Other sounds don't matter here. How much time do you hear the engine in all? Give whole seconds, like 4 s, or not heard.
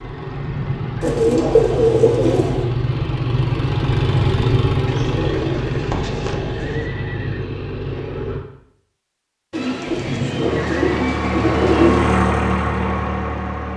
12 s.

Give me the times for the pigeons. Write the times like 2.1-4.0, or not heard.
1.0-2.6, 4.8-6.8, 9.5-12.1.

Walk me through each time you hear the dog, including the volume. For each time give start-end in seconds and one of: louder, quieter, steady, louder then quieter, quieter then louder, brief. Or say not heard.
not heard.